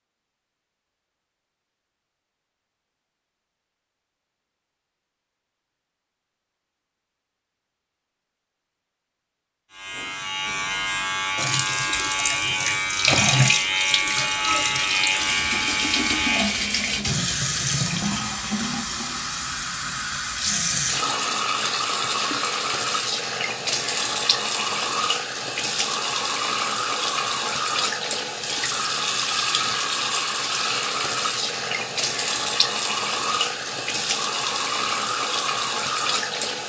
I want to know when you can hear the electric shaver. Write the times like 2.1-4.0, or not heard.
9.7-16.6.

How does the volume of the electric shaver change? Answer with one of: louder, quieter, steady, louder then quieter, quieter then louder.
steady.